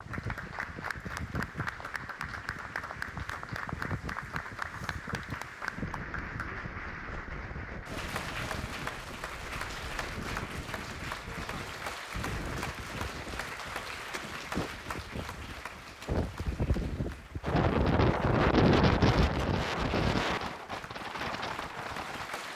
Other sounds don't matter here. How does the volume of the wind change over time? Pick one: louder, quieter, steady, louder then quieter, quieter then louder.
louder.